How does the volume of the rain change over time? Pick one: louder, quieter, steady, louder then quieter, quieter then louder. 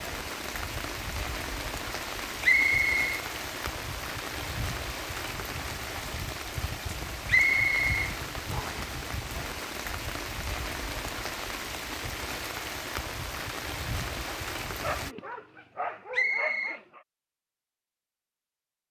steady.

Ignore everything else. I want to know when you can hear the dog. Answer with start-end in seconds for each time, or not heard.
14.2-17.1.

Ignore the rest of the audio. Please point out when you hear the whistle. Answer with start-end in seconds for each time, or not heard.
2.4-3.1, 7.2-8.8, 16.1-16.8.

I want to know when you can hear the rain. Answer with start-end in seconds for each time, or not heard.
0.0-15.2.